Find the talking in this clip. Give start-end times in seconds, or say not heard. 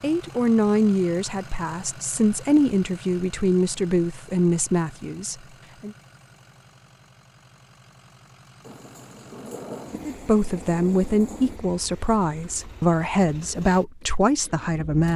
0.0-6.0, 10.1-15.1.